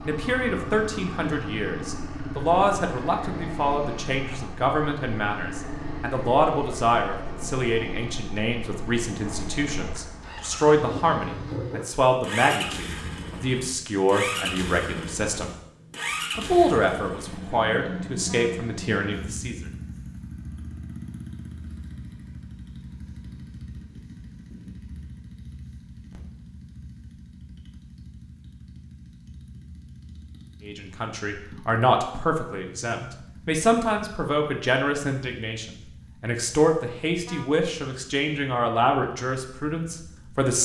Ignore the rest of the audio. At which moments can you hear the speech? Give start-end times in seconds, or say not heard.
0.0-15.5, 16.4-19.6, 30.6-40.6.